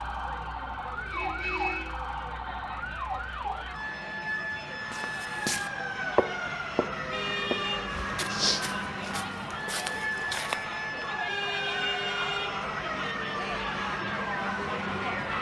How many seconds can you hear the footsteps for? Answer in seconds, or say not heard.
6 s.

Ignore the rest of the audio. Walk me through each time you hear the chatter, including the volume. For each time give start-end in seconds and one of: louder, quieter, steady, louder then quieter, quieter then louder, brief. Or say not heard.
0.0-15.3 louder.